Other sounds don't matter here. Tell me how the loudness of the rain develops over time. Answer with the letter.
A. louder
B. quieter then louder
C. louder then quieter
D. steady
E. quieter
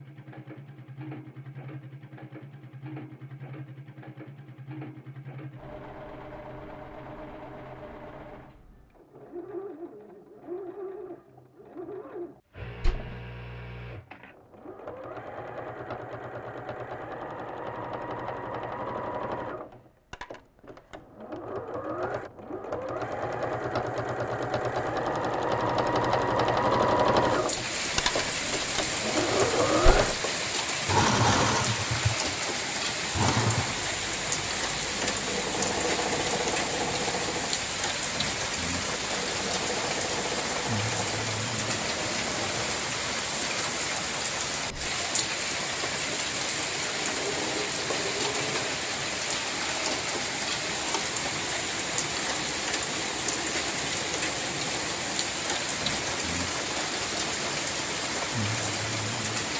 D.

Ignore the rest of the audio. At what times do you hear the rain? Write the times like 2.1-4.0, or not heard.
27.2-59.5.